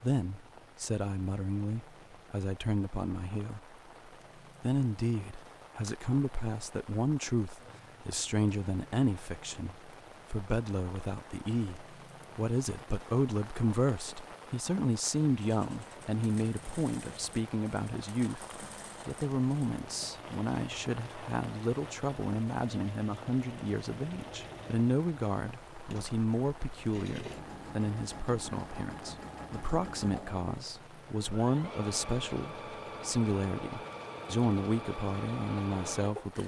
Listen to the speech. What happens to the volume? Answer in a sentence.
The volume of the speech stays about the same.